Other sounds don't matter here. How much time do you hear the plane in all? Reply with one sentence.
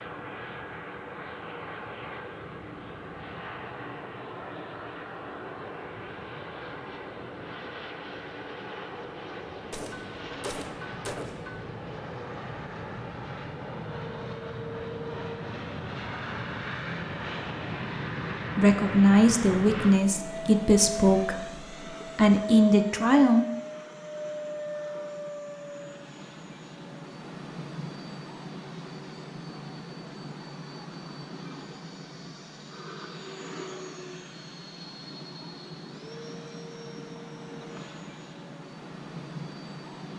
The plane can be heard for 40 seconds in total.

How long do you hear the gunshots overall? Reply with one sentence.
You can hear the gunshots for 2 seconds altogether.